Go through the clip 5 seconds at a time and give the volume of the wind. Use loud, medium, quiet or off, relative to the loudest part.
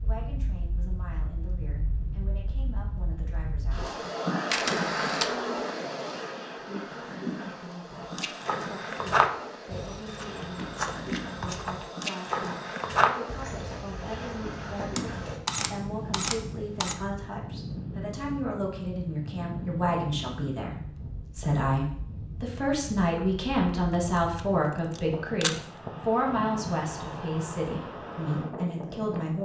loud, loud, loud, loud, medium, loud.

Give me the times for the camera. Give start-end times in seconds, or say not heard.
4.5-5.3, 14.9-16.9, 23.9-25.6.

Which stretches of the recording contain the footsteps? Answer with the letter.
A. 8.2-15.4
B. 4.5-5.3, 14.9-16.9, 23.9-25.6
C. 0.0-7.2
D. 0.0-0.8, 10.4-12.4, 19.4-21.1
A.